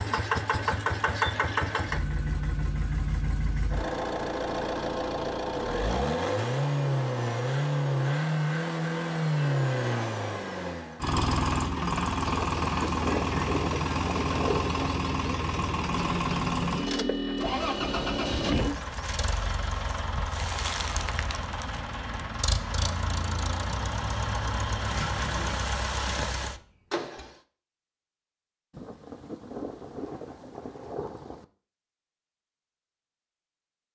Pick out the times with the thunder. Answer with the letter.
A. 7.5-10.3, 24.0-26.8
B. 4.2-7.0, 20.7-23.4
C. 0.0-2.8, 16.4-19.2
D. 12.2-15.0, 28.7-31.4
D.